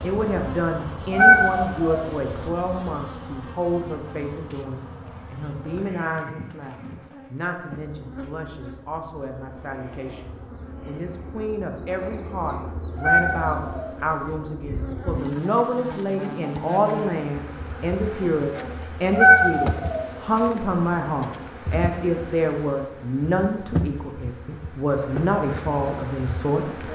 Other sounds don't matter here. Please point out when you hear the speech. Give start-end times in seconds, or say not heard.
0.0-26.8.